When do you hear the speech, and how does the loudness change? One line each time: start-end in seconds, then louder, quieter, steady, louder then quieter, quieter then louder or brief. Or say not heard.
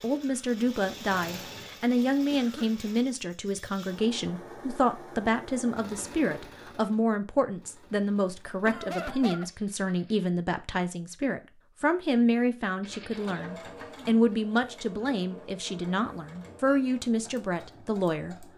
0.0-18.4 steady.